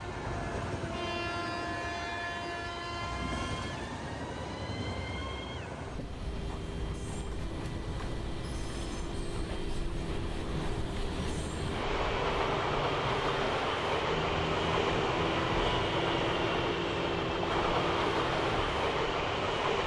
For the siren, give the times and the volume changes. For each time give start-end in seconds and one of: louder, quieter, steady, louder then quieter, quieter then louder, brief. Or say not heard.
0.0-19.8 louder.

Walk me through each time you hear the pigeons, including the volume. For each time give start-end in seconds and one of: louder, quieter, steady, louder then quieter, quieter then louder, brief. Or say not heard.
not heard.